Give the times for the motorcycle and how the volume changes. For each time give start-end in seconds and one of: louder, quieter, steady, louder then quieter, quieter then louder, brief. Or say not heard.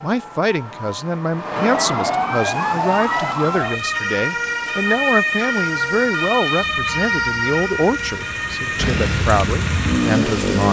6.5-10.6 louder.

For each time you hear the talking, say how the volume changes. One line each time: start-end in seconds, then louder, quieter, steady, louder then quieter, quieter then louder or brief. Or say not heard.
0.0-10.6 steady.